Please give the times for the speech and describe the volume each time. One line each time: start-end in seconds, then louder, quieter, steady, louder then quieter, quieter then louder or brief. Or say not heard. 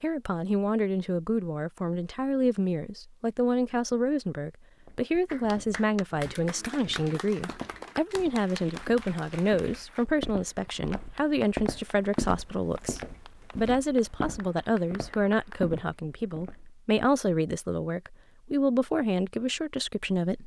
0.0-20.4 steady.